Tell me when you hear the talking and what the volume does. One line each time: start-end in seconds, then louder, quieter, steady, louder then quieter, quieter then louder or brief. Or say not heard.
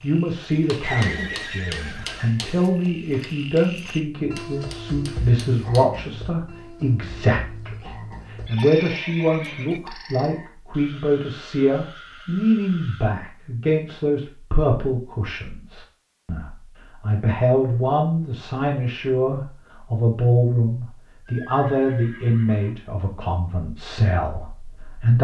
0.0-25.1 steady.